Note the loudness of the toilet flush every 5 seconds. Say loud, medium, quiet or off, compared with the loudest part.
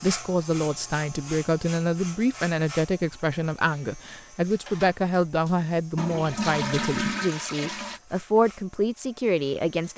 off, loud.